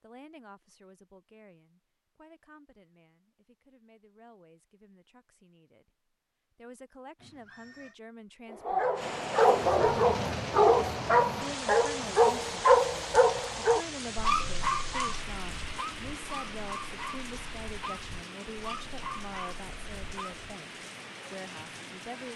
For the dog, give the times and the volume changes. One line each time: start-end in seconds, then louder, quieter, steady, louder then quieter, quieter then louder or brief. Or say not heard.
8.5-20.4 quieter.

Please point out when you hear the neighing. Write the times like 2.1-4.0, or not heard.
7.2-8.0.